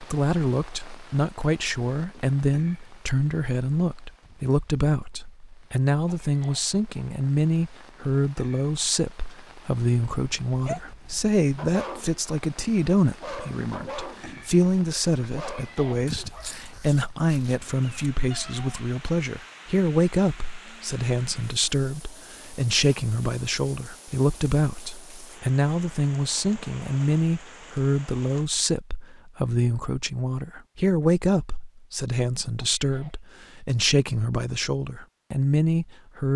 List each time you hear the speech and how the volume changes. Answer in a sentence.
You can hear the speech from 0.0 to 36.3 s, at a steady volume.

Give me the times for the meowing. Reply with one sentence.
You can't hear the meowing here.